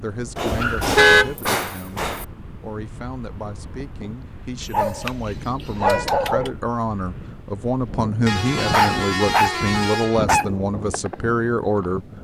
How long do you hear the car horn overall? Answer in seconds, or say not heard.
4 s.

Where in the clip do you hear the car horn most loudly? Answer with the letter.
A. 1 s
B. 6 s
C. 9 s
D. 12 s
A.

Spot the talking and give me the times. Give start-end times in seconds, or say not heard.
0.0-12.1.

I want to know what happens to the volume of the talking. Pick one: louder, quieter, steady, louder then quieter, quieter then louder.
louder.